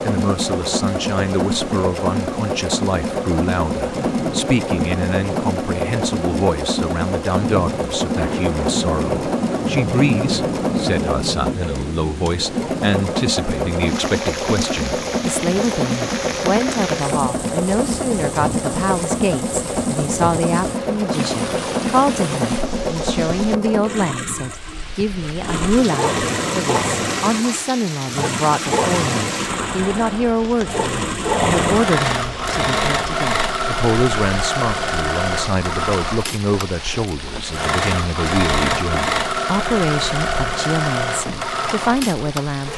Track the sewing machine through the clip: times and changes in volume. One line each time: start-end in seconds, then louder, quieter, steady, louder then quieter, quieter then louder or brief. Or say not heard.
0.0-42.5 steady.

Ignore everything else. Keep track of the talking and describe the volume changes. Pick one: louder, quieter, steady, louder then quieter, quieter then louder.
steady.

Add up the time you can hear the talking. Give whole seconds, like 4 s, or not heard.
43 s.